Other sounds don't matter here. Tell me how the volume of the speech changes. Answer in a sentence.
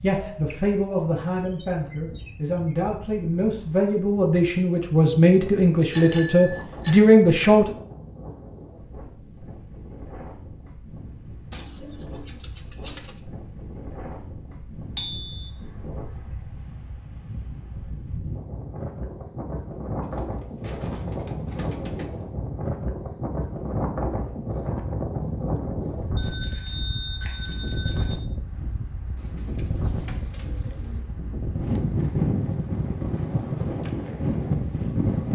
The volume of the speech goes up.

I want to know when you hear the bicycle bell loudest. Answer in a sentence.
The volume of the bicycle bell peaks at 6 seconds.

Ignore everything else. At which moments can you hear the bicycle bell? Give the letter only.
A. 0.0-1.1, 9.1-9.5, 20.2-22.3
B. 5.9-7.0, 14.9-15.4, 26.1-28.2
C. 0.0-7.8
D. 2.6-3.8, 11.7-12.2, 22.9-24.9
B.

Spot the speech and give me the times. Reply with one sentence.
The speech can be heard from 0.0 to 7.8 s.